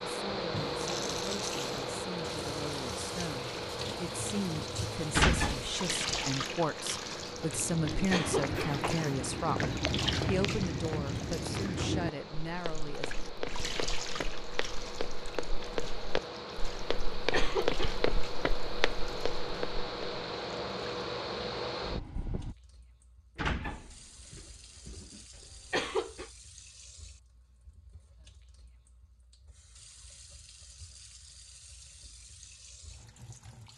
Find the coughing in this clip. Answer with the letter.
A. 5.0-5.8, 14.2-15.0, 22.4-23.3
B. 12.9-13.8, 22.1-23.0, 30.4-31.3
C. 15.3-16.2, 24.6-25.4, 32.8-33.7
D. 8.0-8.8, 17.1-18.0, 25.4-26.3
D.